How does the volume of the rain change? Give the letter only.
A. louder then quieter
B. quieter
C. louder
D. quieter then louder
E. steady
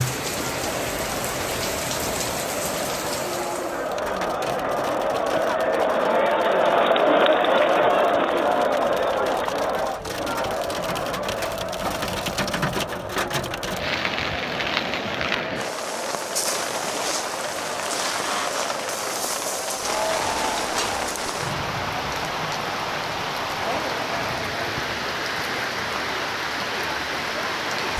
D.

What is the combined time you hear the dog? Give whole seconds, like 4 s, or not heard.
not heard.